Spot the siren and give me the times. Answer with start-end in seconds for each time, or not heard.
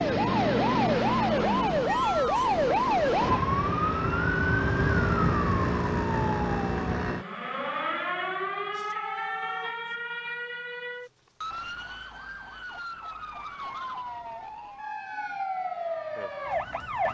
0.0-17.0.